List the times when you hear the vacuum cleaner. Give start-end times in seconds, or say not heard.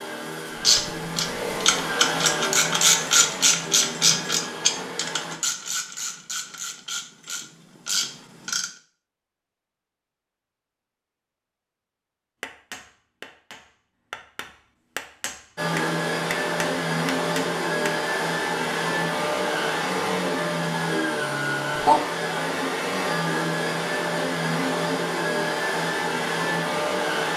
0.0-5.4, 15.6-27.3.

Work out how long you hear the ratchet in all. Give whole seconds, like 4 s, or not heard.
8 s.